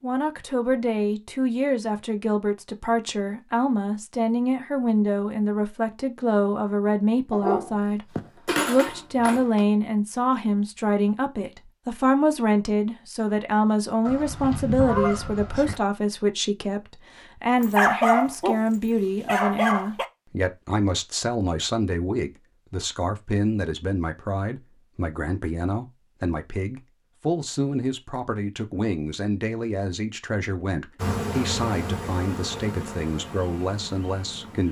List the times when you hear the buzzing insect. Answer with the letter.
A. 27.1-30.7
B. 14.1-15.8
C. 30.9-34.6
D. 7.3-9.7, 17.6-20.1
C.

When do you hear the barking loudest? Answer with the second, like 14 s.
18 s.